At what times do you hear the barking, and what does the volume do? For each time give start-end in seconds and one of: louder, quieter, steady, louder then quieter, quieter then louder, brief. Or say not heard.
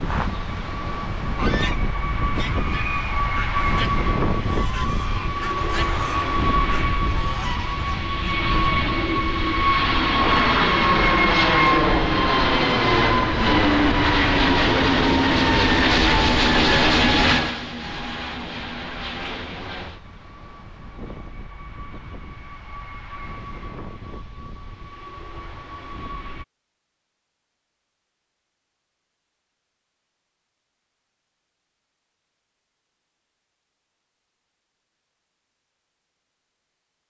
not heard.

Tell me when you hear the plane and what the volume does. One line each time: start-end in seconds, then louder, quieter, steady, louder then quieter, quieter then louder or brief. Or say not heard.
0.0-26.4 louder then quieter.